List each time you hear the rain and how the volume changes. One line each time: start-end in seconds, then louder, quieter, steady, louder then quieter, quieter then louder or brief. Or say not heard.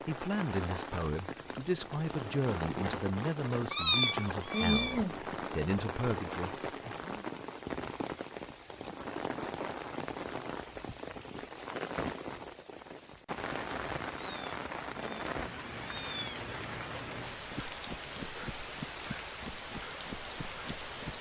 0.0-21.1 steady.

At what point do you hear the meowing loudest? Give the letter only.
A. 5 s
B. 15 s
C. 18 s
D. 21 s
A.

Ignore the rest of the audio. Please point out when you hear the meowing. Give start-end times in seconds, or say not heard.
3.7-5.1, 14.1-16.4.